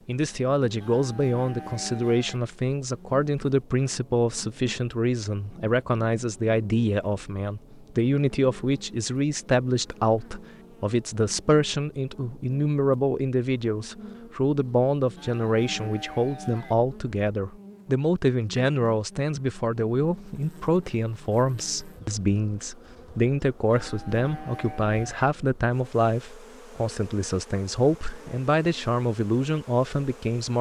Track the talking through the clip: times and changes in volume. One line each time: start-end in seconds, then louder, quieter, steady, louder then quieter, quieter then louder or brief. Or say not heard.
0.1-30.5 steady.